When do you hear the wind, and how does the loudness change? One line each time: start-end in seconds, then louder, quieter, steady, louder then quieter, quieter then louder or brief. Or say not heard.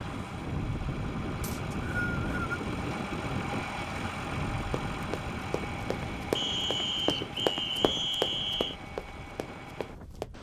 0.0-10.3 quieter.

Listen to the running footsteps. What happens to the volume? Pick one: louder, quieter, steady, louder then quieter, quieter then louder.
louder then quieter.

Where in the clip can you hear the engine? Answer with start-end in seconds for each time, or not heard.
0.0-10.3.